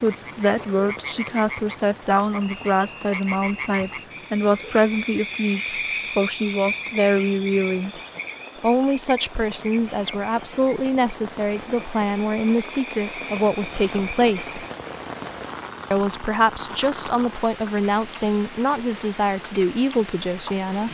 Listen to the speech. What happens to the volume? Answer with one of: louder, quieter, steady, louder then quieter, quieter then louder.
steady.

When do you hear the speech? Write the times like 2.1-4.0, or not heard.
0.0-7.9, 8.6-14.7, 15.9-20.8.